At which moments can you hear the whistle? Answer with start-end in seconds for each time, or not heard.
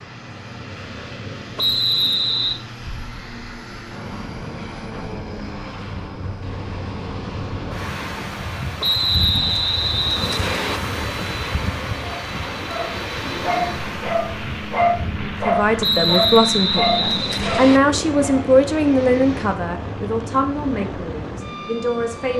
1.6-2.6, 8.8-10.8, 15.8-17.8.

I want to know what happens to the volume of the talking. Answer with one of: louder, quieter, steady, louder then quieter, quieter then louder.
quieter.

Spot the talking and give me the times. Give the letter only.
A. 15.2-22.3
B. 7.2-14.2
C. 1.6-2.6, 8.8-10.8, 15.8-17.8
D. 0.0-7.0
A.